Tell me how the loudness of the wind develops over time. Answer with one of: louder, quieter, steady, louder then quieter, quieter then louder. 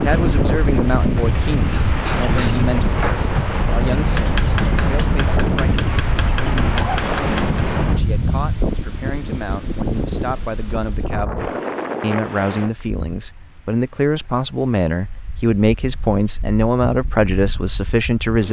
quieter.